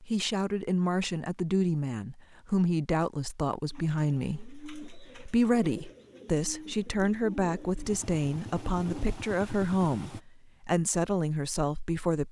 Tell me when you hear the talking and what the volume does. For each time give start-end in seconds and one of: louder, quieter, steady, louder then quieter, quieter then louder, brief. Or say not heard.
0.0-12.2 steady.